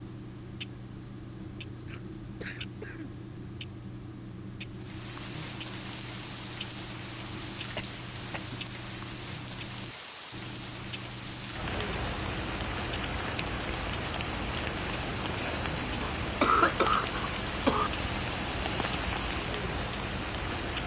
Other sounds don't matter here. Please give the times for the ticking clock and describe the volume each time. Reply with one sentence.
The ticking clock can be heard from 0.0 to 20.8 s, at a steady volume.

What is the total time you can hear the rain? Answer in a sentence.
You can hear the rain for 16 seconds altogether.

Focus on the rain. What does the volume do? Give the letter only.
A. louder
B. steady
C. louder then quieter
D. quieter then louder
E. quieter
B.